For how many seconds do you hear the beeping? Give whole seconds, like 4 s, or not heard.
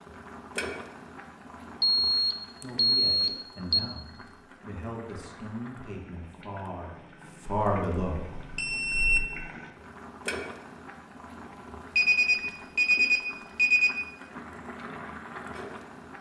6 s.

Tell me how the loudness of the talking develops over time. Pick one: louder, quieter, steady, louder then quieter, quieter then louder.
louder.